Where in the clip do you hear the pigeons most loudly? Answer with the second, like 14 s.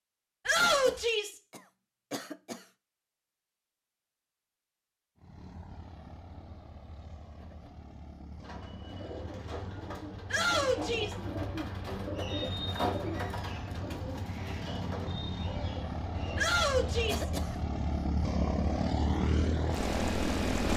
13 s.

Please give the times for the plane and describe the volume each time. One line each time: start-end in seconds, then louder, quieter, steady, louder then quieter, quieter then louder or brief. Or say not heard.
5.2-20.7 louder.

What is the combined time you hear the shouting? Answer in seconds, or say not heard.
3 s.